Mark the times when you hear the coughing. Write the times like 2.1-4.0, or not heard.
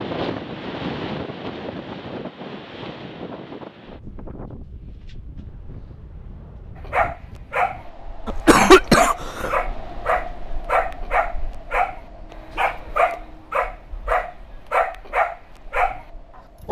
8.2-9.6.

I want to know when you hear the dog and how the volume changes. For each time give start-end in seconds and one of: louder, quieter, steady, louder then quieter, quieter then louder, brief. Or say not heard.
6.8-16.6 steady.